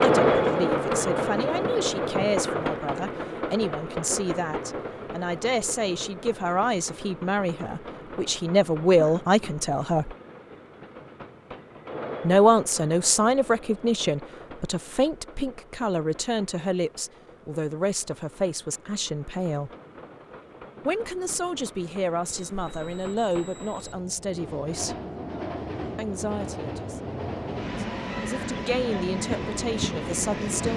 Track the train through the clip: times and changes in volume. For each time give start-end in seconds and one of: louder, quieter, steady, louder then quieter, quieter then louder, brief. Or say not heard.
0.0-30.7 quieter then louder.